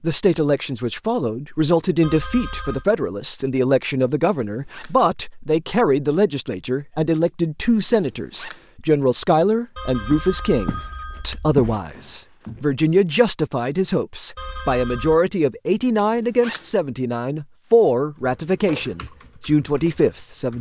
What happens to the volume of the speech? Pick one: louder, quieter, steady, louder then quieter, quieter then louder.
steady.